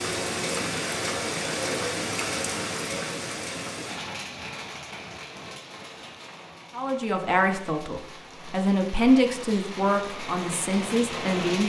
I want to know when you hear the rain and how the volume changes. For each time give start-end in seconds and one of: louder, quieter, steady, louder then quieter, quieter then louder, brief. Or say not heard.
0.0-11.6 quieter then louder.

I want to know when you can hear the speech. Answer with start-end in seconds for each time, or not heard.
6.7-11.6.